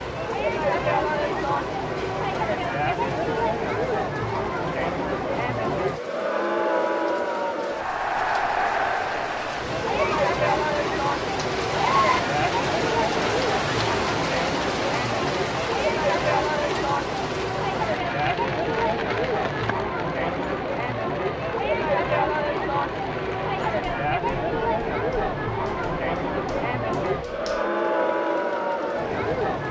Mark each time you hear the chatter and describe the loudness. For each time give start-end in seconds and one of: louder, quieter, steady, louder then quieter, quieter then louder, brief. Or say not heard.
0.0-29.6 steady.